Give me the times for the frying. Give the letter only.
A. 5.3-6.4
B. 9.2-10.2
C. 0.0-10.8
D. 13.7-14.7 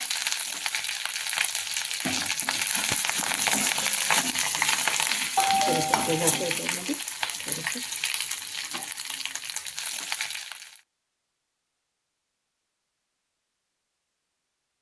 C.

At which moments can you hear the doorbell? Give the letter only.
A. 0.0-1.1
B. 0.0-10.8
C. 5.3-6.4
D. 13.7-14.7
C.